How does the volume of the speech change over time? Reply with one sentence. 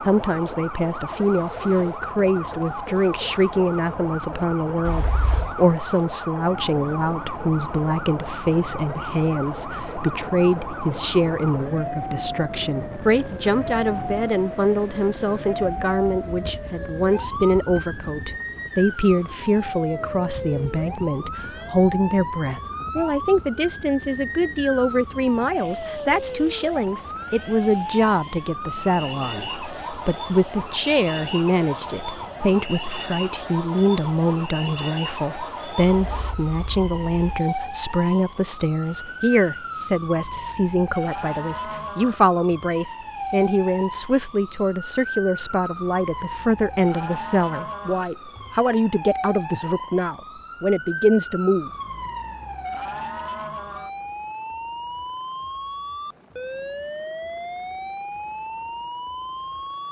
The loudness of the speech stays about the same.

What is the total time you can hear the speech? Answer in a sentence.
You can hear the speech for 52 seconds altogether.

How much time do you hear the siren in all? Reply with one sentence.
The siren can be heard for 60 seconds in total.